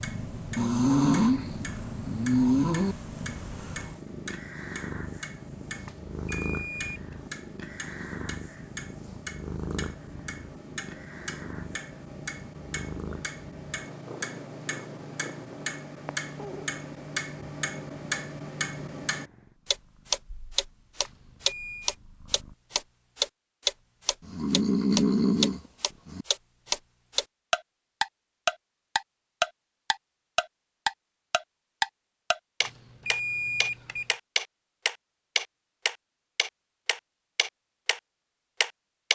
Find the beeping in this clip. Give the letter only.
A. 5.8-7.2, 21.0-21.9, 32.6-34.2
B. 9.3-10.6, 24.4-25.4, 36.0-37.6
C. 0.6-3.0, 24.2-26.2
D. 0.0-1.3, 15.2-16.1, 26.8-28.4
A.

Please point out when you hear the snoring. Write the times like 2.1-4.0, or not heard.
0.6-3.0, 24.2-26.2.